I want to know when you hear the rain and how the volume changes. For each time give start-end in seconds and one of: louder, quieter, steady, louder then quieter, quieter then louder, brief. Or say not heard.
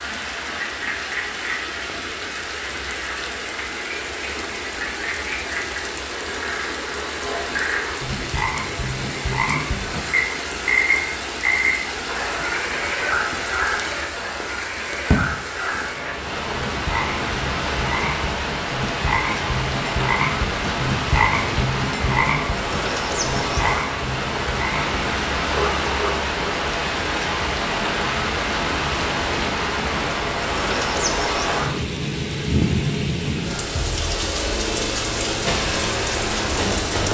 0.0-37.1 louder.